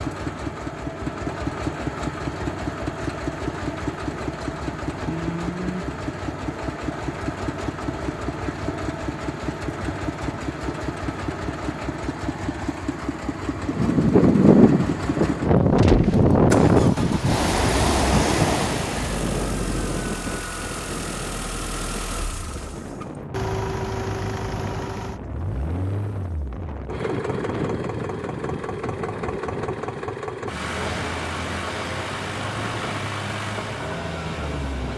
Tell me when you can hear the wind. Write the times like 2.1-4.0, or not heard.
13.7-34.9.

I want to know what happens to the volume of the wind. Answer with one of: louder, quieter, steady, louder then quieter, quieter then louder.
quieter.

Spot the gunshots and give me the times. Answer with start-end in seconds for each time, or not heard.
15.8-16.2.